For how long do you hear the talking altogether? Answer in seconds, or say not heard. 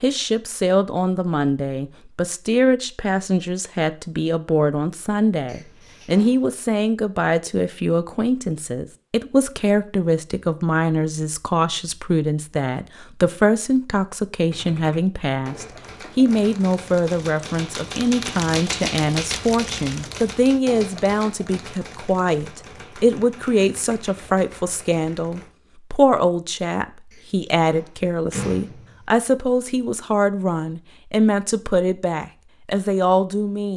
34 s.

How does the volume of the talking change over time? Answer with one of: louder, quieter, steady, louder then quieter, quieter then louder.
steady.